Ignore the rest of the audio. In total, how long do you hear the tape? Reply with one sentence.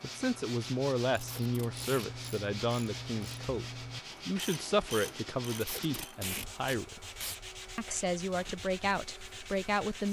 You can hear the tape for 3 seconds altogether.